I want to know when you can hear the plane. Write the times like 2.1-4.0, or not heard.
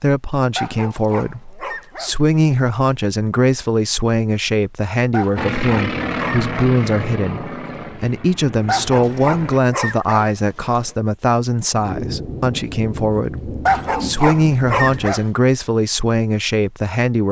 5.3-9.6.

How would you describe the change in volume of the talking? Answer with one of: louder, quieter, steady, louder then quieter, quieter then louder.
steady.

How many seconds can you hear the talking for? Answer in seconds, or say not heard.
17 s.